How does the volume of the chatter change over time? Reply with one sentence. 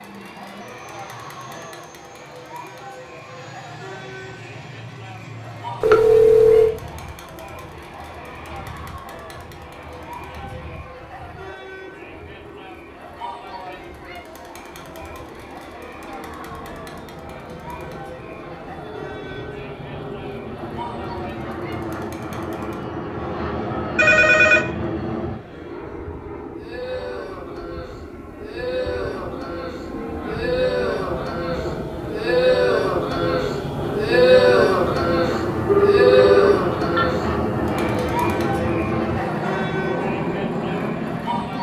The volume of the chatter goes up.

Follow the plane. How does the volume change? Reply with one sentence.
The volume of the plane goes up.